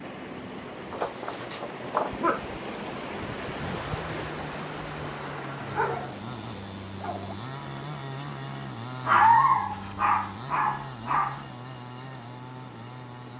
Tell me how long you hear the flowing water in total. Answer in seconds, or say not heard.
13 s.